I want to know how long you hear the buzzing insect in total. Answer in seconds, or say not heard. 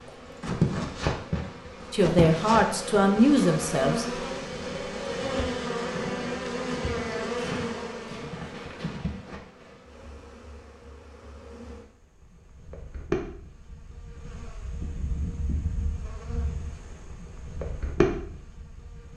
19 s.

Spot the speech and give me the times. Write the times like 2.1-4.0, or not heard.
1.9-4.0.